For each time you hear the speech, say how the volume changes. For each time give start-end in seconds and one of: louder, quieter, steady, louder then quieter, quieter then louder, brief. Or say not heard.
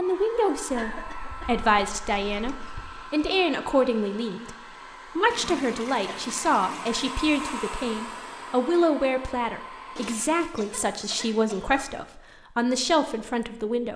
0.0-13.9 steady.